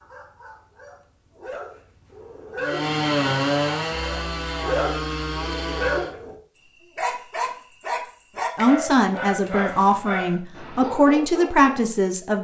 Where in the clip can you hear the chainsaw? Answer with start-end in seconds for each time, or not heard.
2.5-6.2.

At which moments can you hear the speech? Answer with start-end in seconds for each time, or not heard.
8.6-12.3.